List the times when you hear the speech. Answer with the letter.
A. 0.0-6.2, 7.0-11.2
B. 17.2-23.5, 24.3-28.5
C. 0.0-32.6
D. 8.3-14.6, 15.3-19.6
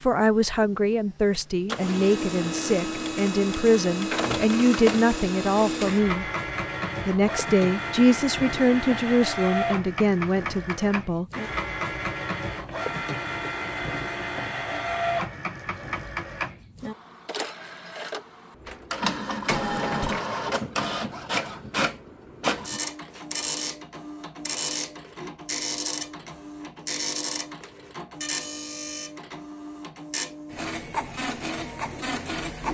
A.